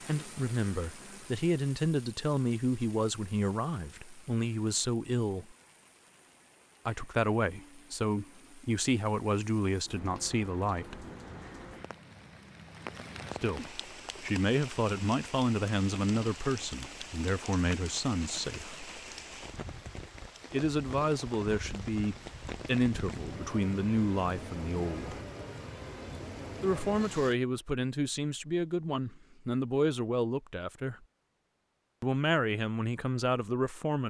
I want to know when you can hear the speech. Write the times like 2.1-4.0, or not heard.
0.1-5.5, 6.8-11.1, 13.3-18.9, 20.5-25.2, 26.6-31.1, 32.0-34.0.